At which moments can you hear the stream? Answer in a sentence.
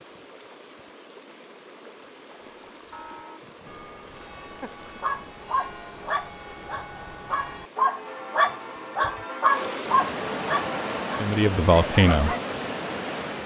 You can hear the stream from 0.0 to 13.4 s.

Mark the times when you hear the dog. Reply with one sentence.
The dog can be heard from 4.6 to 12.6 s.